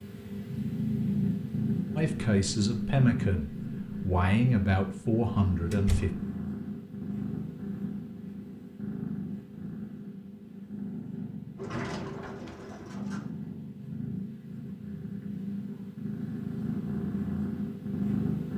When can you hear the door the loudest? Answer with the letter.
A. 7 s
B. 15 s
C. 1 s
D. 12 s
D.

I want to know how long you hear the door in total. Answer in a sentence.
The door can be heard for 2 seconds in total.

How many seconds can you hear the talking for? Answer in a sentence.
The talking can be heard for 4 seconds in total.